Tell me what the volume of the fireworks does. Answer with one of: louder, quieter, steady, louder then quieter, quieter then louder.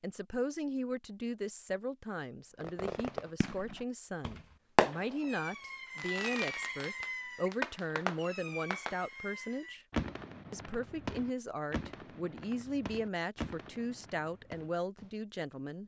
quieter.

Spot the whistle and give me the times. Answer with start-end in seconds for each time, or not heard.
not heard.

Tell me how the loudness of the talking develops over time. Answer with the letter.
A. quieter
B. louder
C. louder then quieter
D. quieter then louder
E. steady
E.